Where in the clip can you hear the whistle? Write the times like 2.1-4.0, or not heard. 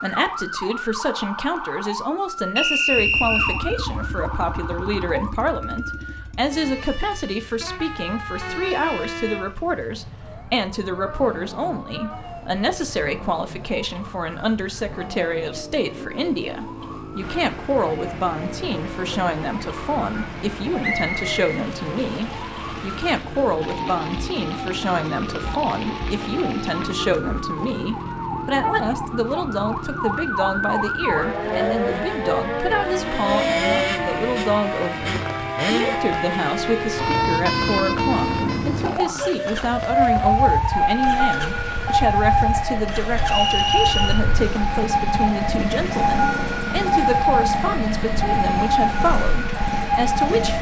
2.5-3.6, 20.8-22.2, 43.2-44.2.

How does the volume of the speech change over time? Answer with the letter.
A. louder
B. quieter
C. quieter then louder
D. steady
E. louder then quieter
D.